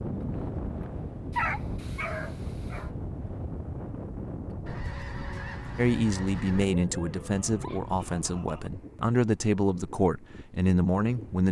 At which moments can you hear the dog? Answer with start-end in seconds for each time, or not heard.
1.3-2.9, 6.7-8.7.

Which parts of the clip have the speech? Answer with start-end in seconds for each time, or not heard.
5.8-11.4.